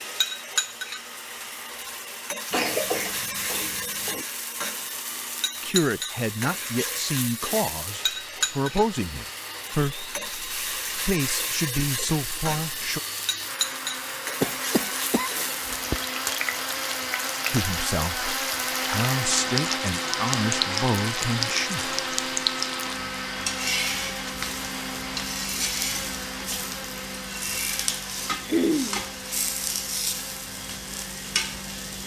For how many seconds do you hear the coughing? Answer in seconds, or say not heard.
4 s.